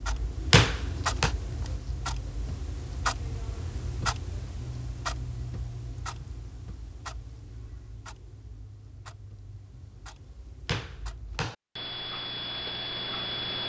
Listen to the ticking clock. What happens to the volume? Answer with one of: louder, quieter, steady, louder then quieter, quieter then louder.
quieter then louder.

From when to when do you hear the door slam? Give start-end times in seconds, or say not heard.
0.5-1.4, 10.7-11.6.